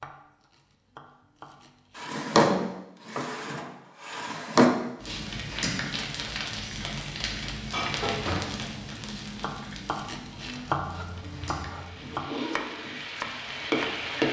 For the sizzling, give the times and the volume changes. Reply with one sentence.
You can hear the sizzling from 5.0 to 14.2 s, getting quieter then louder.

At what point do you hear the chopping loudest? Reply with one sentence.
The volume of the chopping peaks at 11 seconds.